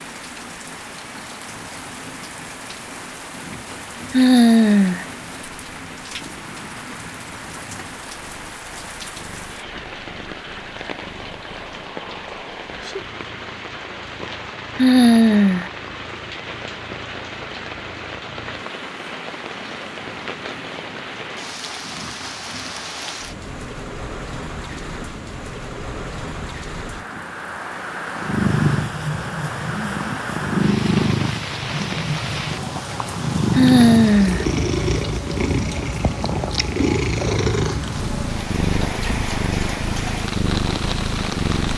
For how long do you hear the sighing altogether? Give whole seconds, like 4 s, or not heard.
3 s.